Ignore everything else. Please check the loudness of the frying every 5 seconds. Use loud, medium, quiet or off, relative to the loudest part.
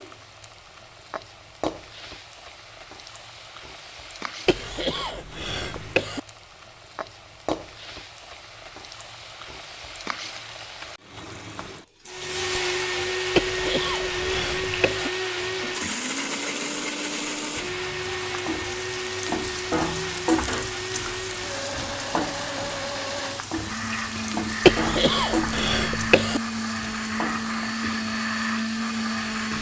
medium, medium, medium, loud, loud, loud.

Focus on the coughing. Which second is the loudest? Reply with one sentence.
The loudest moment of the coughing is at 25 seconds.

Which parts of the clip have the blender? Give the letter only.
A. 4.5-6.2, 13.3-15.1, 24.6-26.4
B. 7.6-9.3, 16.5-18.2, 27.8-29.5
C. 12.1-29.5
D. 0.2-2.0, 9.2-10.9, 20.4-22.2
C.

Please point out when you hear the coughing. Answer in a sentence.
You can hear the coughing from 4.5 to 6.2 s, from 13.3 to 15.1 s and from 24.6 to 26.4 s.